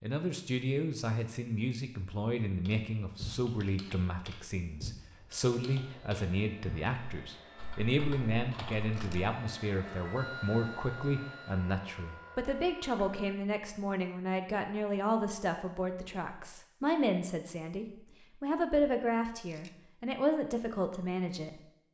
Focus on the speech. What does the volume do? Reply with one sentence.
The loudness of the speech stays about the same.